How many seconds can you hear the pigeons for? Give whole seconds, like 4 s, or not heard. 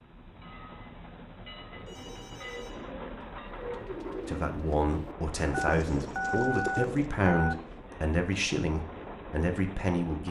5 s.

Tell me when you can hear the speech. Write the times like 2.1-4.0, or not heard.
4.2-10.2.